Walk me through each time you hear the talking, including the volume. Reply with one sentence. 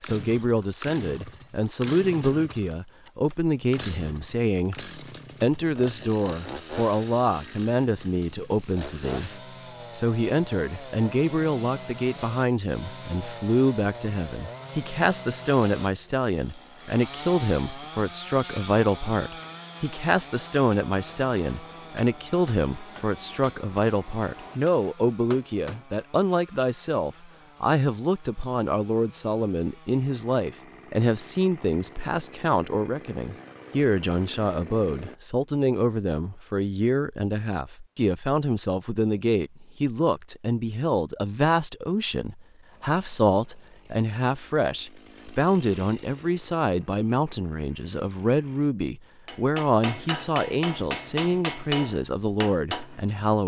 You can hear the talking from 0.0 to 53.4 s, at a steady volume.